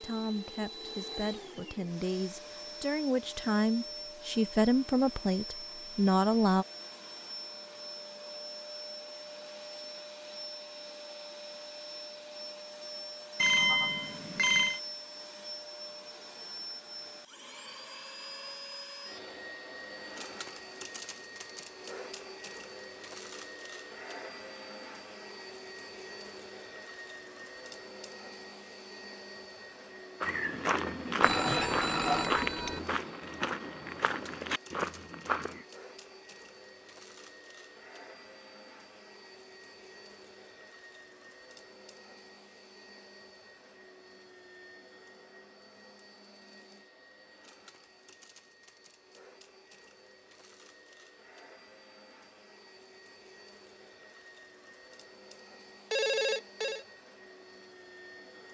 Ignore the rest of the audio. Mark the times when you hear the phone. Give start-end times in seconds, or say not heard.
13.3-14.8, 31.2-32.8, 55.9-56.9.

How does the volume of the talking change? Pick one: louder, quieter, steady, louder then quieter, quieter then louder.
louder.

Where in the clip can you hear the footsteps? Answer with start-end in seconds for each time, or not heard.
30.2-35.6.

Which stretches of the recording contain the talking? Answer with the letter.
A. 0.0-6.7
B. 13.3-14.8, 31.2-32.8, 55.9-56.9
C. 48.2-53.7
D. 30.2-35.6
A.